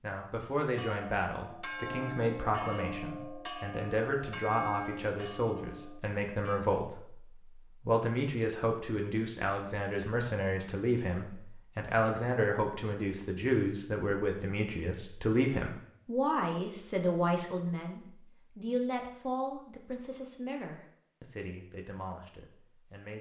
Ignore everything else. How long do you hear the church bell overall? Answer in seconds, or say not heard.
6 s.